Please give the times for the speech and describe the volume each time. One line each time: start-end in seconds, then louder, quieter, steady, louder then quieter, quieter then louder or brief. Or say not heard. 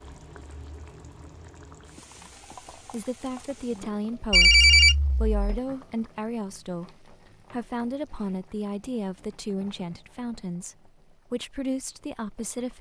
2.8-12.7 steady.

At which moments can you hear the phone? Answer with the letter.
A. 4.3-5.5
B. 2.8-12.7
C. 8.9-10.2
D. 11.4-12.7
A.